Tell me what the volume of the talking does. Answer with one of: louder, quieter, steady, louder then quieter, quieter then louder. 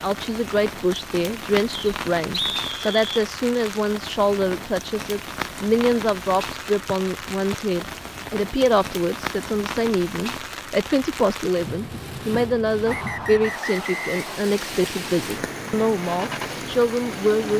steady.